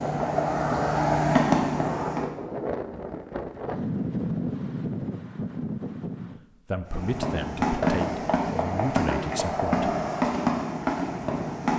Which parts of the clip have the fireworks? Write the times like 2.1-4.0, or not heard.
0.0-2.2, 6.9-11.7.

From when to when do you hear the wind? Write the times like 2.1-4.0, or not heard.
0.0-6.4.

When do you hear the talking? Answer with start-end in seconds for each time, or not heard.
6.7-9.8.